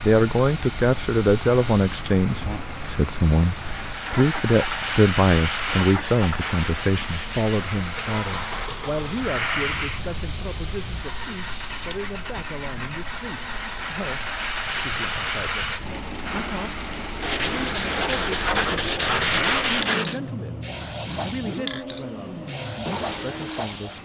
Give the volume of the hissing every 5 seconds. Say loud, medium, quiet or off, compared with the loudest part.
medium, loud, medium, loud, loud.